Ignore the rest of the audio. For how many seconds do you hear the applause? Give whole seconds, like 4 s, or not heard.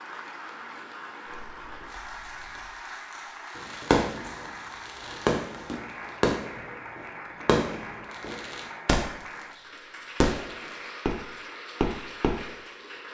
13 s.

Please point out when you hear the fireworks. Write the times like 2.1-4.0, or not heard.
1.3-2.6, 3.5-9.1, 10.2-12.5.